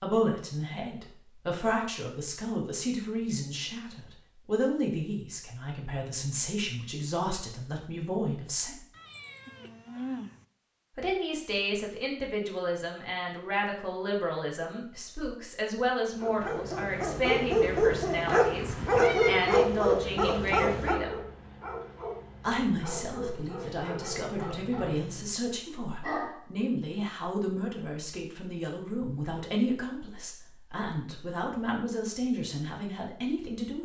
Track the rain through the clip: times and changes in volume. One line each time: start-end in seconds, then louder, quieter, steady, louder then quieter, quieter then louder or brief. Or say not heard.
not heard.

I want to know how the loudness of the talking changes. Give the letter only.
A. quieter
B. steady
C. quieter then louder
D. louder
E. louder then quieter
B.